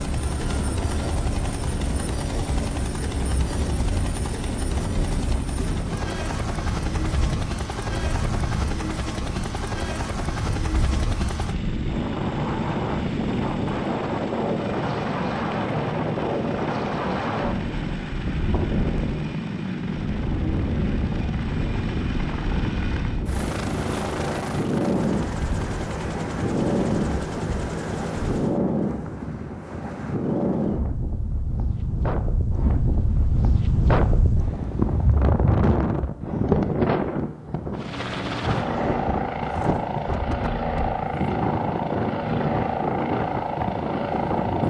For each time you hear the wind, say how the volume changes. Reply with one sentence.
You can hear the wind from 0.0 to 44.6 s, getting louder.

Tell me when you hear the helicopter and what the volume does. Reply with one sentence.
You can hear the helicopter from 0.0 to 28.6 s, at a steady volume; and from 37.7 to 44.6 s, at a steady volume.